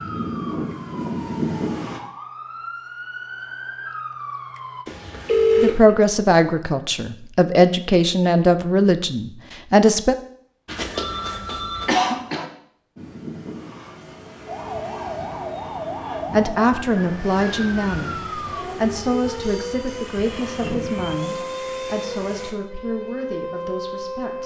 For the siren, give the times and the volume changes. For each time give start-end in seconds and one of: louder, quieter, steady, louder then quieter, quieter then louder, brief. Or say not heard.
0.0-4.8 louder
14.4-24.4 steady.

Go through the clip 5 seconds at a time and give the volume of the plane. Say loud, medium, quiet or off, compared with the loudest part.
loud, off, medium, medium, medium.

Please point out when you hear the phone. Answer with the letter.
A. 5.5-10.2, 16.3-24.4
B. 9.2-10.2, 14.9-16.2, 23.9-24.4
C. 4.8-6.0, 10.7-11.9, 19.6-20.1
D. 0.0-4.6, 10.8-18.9
C.